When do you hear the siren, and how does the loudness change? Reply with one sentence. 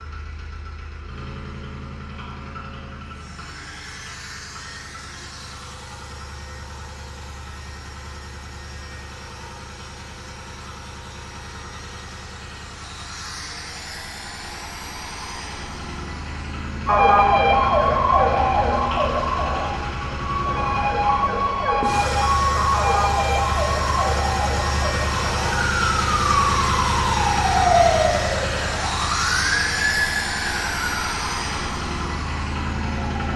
You can hear the siren from 16.9 to 33.3 s, getting quieter.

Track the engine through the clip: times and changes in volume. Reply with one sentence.
The engine can be heard from 0.0 to 33.3 s, getting louder.